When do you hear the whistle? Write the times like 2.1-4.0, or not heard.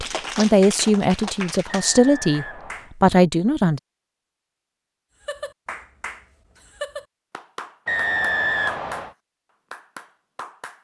1.6-2.9, 7.8-9.1.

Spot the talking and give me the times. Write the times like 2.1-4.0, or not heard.
0.0-3.8.